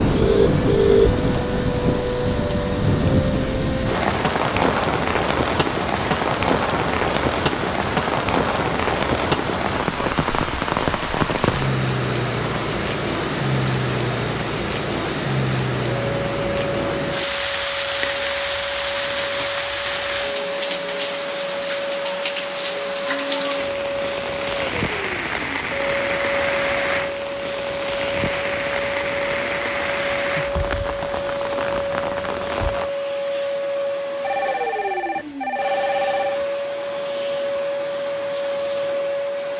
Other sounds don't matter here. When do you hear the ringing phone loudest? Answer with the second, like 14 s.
1 s.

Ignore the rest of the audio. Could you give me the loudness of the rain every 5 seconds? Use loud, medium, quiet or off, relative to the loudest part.
loud, loud, loud, loud, medium, medium, medium, off.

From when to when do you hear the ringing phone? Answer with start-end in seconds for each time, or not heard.
0.1-1.1, 34.2-36.4.